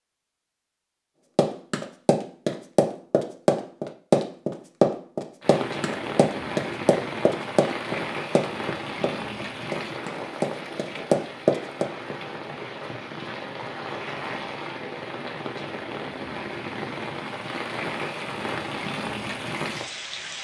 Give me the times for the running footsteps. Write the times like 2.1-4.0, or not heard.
1.4-11.8.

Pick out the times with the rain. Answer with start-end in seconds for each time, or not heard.
5.4-20.3.